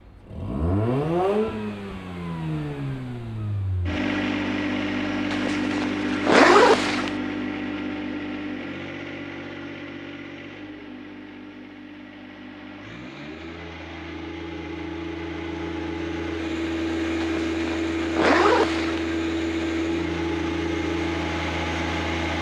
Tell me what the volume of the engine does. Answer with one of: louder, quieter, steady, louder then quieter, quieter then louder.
quieter then louder.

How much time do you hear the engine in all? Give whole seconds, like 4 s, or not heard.
22 s.